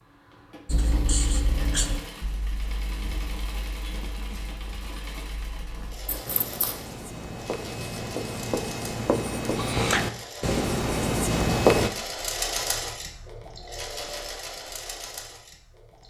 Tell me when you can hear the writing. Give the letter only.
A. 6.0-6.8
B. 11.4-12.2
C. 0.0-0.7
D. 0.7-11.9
D.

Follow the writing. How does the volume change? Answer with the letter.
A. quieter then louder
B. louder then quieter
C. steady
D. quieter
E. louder
A.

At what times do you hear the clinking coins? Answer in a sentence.
The clinking coins can be heard from 6.0 to 6.8 s.